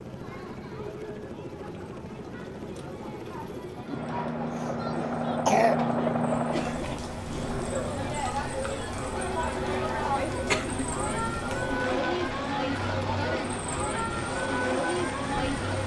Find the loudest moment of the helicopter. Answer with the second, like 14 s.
6 s.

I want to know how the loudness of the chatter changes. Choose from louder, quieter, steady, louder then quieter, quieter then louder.
louder.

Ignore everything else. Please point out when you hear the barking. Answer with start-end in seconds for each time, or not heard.
not heard.